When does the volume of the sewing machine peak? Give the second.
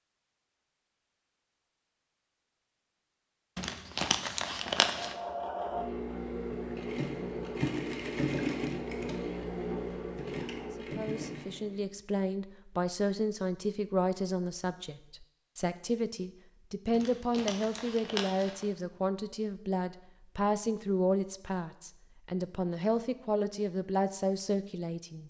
8 s.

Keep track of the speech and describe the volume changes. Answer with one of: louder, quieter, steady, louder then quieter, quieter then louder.
steady.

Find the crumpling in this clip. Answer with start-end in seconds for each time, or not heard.
3.5-5.2, 16.9-18.6.